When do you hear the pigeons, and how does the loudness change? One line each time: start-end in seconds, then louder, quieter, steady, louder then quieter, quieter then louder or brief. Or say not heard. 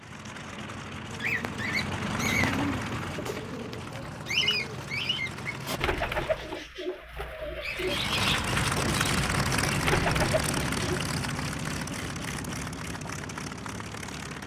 1.1-11.1 steady.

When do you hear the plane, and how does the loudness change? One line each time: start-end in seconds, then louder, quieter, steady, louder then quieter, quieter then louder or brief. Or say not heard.
0.0-6.7 louder then quieter
7.7-14.4 quieter.